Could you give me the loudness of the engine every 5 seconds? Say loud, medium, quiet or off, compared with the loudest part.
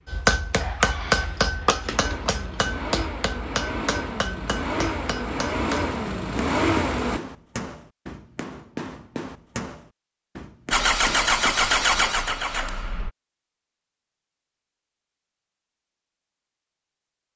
medium, loud, loud, off.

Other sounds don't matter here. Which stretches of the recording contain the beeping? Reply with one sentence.
You can't hear the beeping here.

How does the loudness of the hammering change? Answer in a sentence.
The volume of the hammering goes down.